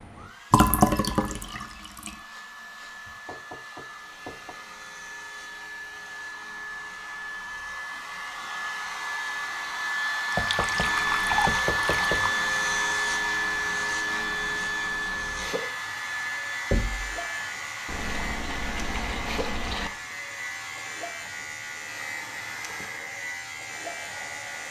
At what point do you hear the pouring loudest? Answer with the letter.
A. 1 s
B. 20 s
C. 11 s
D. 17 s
A.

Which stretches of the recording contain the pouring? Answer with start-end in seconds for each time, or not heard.
0.5-2.1, 10.3-12.2, 17.9-19.9.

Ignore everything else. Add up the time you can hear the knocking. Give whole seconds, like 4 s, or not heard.
4 s.